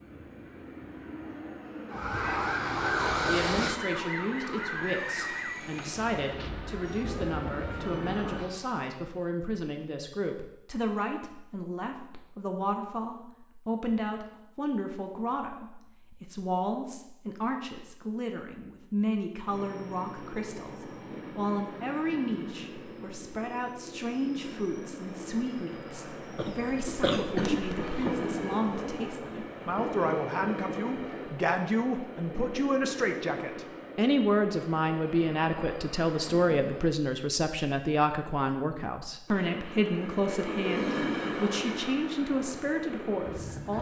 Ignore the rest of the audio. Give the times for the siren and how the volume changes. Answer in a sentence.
You can hear the siren from 1.9 to 8.8 s, getting quieter.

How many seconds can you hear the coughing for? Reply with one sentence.
The coughing can be heard for 2 seconds in total.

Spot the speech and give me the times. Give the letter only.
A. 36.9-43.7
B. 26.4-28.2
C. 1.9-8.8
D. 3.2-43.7
D.